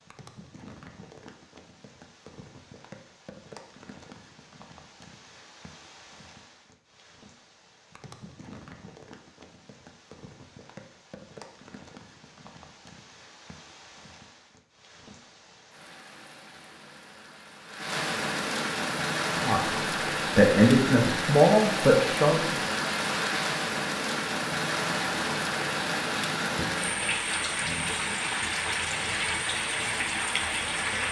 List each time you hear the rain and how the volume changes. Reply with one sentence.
You can hear the rain from 0.0 to 31.0 s, getting louder.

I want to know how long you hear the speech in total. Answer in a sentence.
The speech can be heard for 3 seconds in total.